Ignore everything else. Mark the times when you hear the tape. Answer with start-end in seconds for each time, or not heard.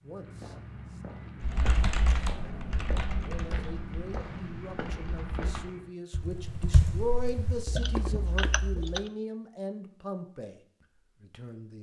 not heard.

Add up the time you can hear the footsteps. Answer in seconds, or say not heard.
6 s.